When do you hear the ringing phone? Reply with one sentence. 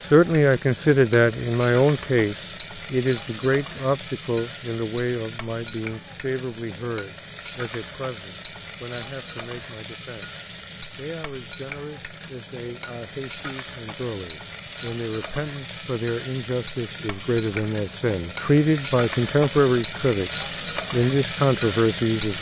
The ringing phone can't be heard in this clip.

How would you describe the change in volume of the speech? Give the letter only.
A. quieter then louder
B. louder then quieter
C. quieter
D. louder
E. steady
A.